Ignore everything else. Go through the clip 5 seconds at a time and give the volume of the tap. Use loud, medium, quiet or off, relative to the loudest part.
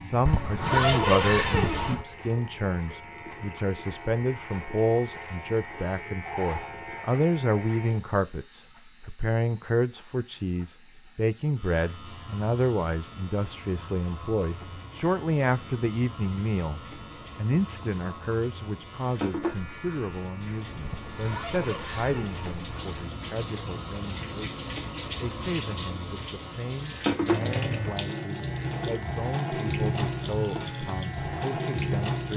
quiet, quiet, quiet, medium, medium, loud, loud.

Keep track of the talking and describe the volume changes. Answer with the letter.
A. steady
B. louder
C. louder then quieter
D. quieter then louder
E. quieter
E.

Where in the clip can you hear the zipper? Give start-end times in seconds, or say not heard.
0.2-2.0, 20.9-22.9.